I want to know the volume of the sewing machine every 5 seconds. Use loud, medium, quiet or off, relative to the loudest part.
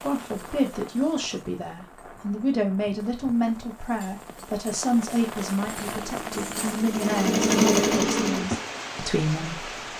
off, loud.